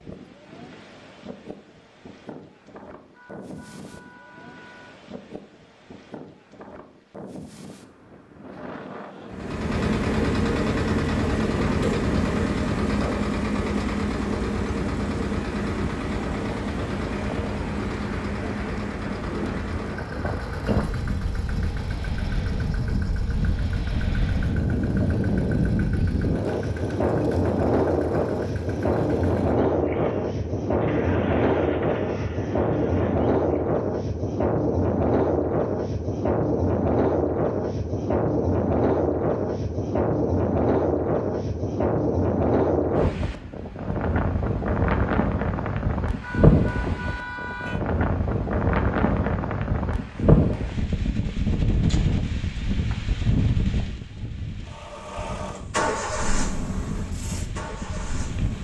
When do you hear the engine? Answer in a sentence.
You can hear the engine from 9.3 to 33.6 s and from 54.6 to 58.5 s.